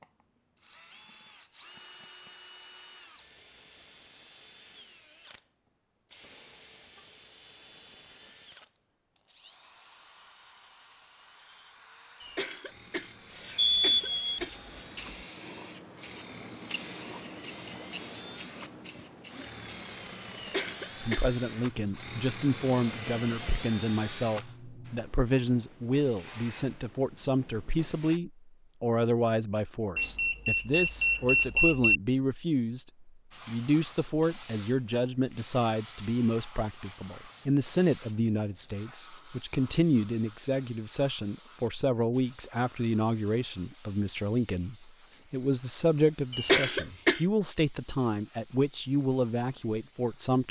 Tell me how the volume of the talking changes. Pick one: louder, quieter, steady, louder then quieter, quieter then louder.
steady.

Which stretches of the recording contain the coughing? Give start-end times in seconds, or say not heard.
12.2-14.8, 20.4-21.3, 46.3-47.2.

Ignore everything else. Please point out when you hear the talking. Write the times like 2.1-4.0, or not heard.
21.0-50.4.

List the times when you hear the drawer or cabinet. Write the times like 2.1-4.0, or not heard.
not heard.